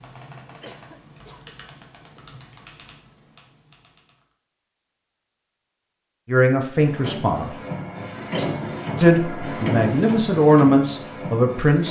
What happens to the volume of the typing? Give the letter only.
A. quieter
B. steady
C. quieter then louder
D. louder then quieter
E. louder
A.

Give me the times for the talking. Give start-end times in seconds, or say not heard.
6.2-7.5, 9.0-11.8.